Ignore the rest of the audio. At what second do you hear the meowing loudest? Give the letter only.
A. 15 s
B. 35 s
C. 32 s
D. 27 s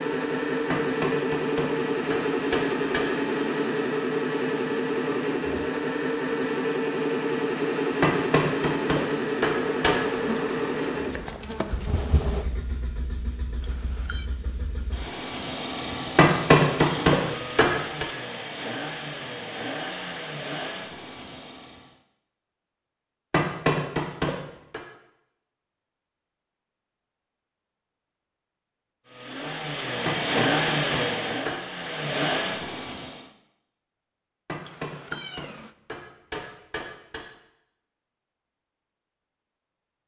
B.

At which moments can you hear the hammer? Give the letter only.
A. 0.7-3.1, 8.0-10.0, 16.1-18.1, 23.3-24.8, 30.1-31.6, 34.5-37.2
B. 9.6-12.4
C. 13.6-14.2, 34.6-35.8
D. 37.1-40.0
A.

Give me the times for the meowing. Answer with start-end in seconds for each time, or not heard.
13.6-14.2, 34.6-35.8.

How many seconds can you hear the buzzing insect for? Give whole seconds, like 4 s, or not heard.
3 s.